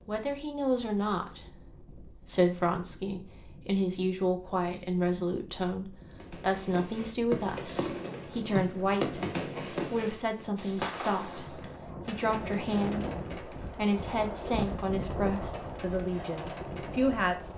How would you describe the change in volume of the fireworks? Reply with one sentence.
The volume of the fireworks goes down.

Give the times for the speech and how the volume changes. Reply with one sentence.
You can hear the speech from 0.1 to 17.5 s, at a steady volume.